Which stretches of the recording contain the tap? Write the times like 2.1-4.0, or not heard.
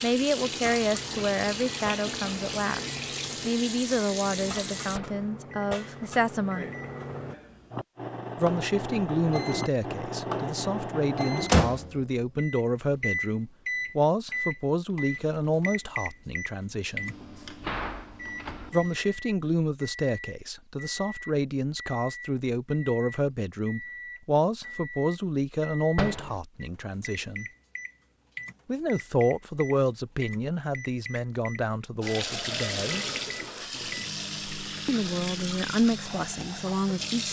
0.0-5.0, 32.0-37.2.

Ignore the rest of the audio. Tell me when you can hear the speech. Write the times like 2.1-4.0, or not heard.
0.0-6.7, 8.3-17.1, 18.7-27.4, 28.6-33.0, 34.9-37.2.